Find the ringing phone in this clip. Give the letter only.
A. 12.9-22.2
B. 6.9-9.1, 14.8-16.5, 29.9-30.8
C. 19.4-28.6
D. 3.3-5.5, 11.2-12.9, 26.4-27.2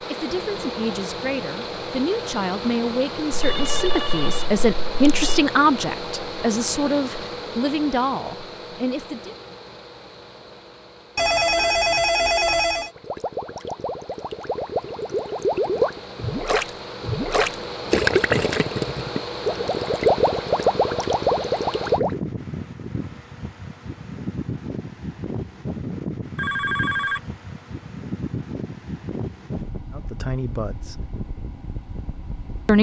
D.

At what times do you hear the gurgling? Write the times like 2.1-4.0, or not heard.
12.9-22.2.